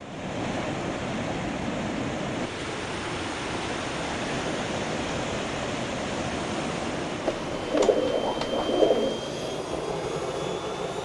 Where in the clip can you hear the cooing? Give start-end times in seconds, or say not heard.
7.2-9.2.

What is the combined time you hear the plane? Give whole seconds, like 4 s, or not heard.
7 s.